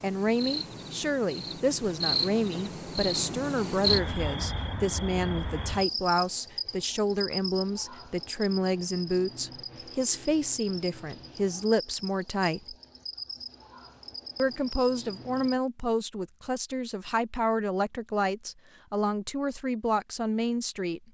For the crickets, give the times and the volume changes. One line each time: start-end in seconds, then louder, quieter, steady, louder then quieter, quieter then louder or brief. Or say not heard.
0.0-15.6 quieter.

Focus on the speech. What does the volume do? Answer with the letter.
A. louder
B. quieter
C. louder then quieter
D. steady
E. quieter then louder
D.